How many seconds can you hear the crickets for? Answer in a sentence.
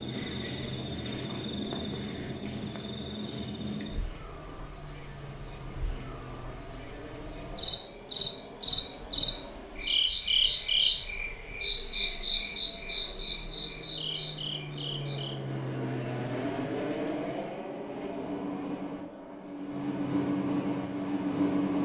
The crickets can be heard for 22 seconds in total.